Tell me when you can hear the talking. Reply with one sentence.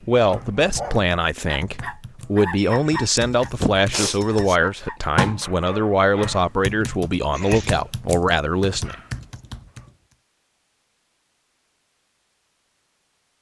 You can hear the talking from 0.1 to 8.9 s.